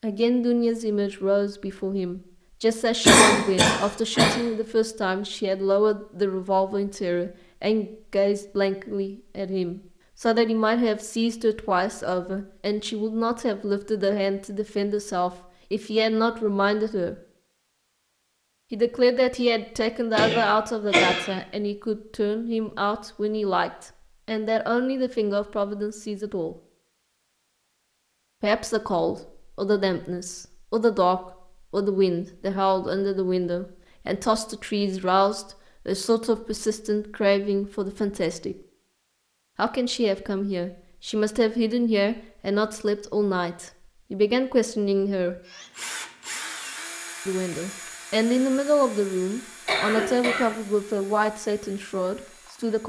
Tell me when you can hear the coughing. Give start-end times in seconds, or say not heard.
3.0-4.3, 20.1-21.2, 49.6-50.5.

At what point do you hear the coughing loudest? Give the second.
3 s.